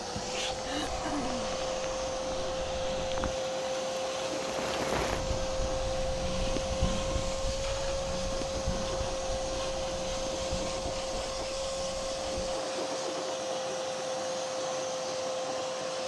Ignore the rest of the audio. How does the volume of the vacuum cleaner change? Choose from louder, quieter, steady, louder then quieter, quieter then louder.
steady.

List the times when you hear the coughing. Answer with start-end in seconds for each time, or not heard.
0.6-1.6.